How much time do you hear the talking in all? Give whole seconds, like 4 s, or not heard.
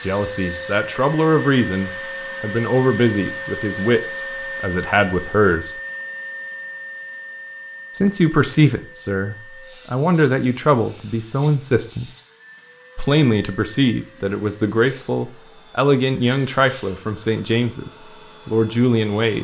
16 s.